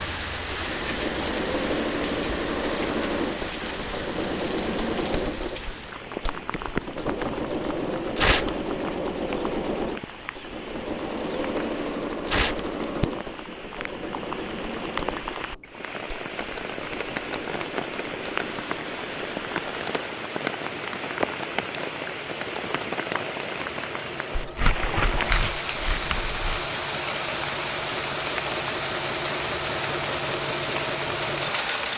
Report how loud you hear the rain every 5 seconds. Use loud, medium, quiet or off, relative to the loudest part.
loud, medium, medium, loud, loud, loud, loud.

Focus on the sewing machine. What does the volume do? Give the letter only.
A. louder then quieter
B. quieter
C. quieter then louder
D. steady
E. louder
C.